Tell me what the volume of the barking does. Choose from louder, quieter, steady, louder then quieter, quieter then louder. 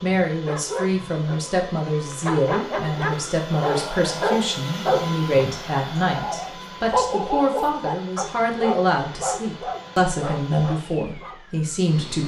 louder then quieter.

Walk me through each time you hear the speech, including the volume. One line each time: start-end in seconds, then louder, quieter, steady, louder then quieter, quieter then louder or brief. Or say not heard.
0.0-12.2 steady.